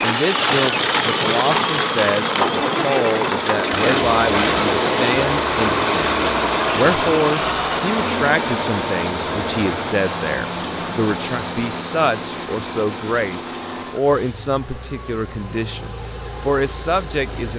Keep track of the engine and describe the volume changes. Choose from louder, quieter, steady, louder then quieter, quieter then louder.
quieter.